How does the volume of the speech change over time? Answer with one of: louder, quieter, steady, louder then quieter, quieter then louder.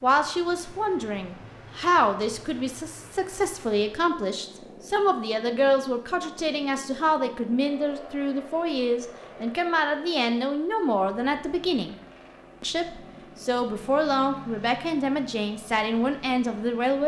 steady.